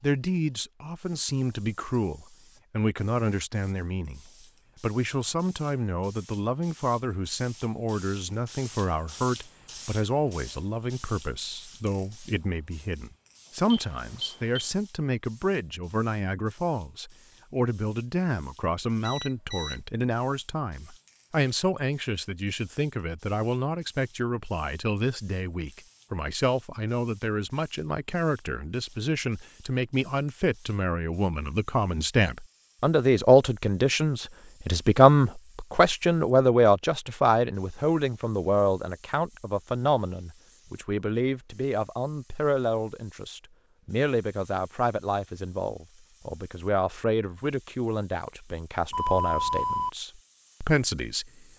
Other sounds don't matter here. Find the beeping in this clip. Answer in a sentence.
The beeping can be heard from 13.7 to 14.7 s, from 19.0 to 19.8 s and from 48.9 to 49.9 s.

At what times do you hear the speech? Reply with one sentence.
You can hear the speech from 0.0 to 51.5 s.